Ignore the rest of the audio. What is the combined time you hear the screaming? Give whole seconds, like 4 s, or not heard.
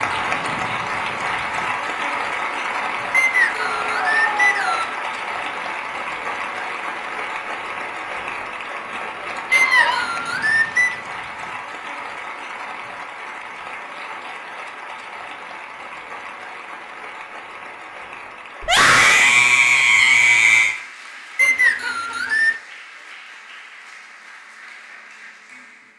4 s.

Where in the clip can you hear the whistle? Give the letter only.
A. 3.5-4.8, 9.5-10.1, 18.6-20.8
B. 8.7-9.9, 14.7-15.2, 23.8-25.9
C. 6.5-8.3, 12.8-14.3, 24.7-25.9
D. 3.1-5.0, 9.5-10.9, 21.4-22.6
D.